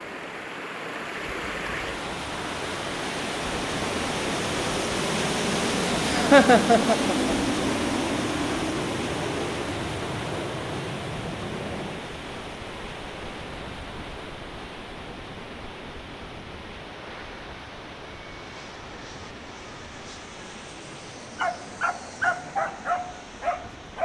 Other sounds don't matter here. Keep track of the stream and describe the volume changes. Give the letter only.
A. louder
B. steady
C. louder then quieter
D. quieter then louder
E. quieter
E.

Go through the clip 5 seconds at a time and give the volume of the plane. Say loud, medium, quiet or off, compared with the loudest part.
medium, loud, medium, quiet, quiet.